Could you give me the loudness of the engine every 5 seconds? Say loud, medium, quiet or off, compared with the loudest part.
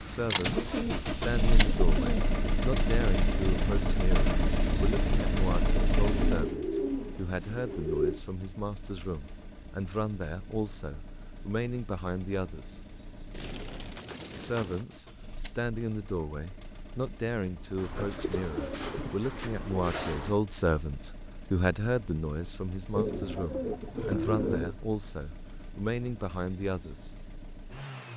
loud, medium, quiet, quiet, quiet, quiet.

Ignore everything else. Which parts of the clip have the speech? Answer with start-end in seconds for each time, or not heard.
0.0-12.8, 14.3-27.1.